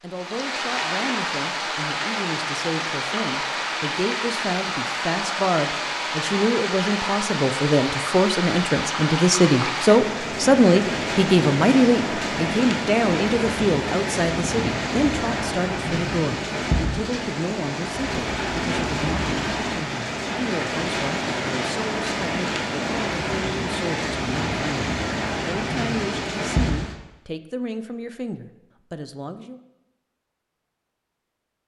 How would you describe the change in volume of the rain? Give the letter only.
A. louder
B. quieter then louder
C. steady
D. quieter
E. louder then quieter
C.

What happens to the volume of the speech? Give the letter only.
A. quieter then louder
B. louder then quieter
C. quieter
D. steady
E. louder
B.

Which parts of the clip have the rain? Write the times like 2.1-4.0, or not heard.
0.0-26.9.